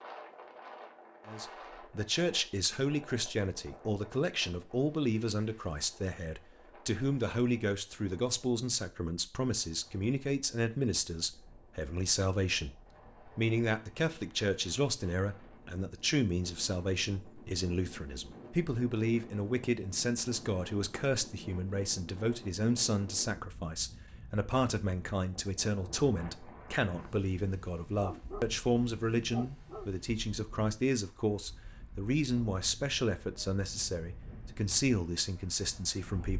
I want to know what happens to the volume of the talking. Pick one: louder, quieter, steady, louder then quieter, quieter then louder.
steady.